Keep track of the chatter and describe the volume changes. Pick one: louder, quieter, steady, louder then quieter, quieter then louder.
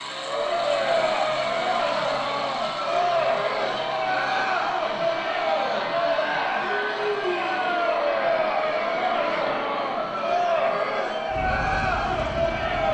steady.